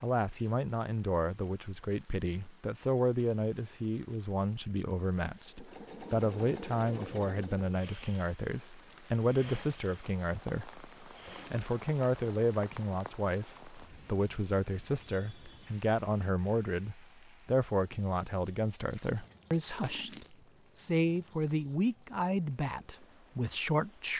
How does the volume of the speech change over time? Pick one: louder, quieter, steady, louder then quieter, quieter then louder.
steady.